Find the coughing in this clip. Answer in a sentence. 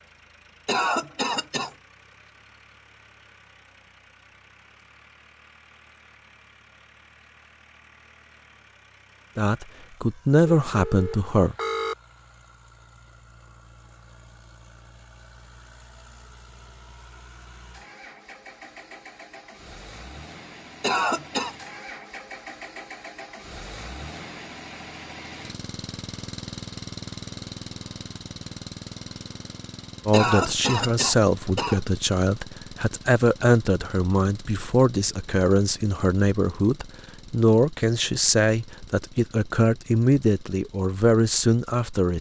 The coughing can be heard from 0.7 to 1.7 s, from 20.8 to 21.6 s and from 30.1 to 31.8 s.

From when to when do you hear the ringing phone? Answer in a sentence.
You can hear the ringing phone from 10.4 to 11.9 s.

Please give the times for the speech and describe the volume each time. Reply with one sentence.
You can hear the speech briefly from 9.3 to 11.6 s; and from 30.1 to 42.1 s, at a steady volume.